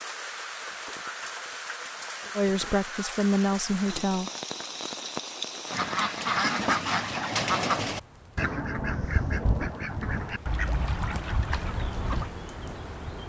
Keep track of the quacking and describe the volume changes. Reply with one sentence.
The volume of the quacking goes down.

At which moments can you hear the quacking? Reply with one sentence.
The quacking can be heard from 5.7 to 12.3 s.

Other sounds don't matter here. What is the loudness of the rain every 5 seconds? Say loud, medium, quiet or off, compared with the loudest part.
loud, loud, medium.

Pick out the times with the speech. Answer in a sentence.
You can hear the speech from 2.4 to 4.3 s.